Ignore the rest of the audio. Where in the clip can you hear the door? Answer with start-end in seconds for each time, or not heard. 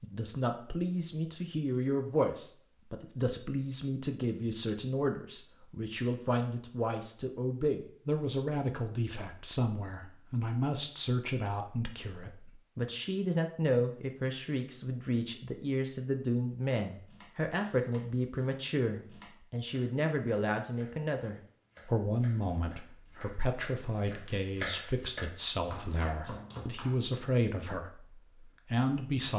not heard.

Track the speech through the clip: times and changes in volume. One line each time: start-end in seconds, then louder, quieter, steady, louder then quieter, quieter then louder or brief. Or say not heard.
0.0-29.3 steady.